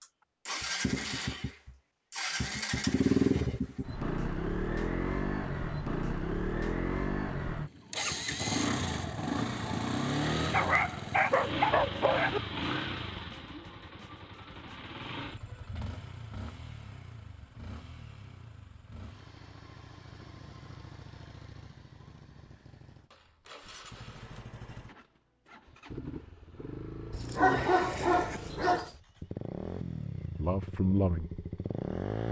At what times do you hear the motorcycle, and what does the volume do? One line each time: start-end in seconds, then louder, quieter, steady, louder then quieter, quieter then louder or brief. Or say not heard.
0.0-32.2 quieter then louder.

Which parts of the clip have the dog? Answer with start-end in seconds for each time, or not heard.
10.5-12.4, 27.1-28.9.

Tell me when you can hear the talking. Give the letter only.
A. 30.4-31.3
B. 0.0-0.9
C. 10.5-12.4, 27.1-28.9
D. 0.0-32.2
A.